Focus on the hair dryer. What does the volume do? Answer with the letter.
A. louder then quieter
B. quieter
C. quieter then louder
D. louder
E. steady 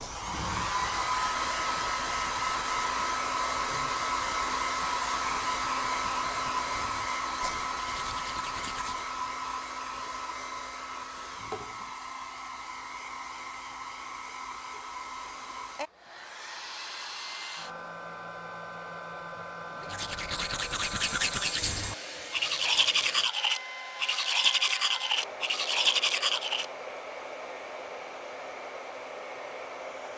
B.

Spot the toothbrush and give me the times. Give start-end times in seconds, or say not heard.
0.0-9.2, 19.8-26.6.